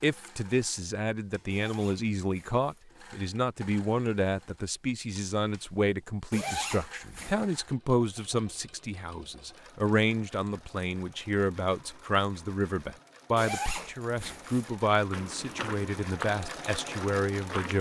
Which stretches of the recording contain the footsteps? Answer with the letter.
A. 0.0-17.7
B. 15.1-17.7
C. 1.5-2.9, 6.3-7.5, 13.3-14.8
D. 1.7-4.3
B.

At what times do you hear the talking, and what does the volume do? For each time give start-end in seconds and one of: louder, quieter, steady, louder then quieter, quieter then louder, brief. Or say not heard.
0.0-17.7 steady.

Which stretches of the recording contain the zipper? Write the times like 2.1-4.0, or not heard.
1.5-2.9, 6.3-7.5, 13.3-14.8.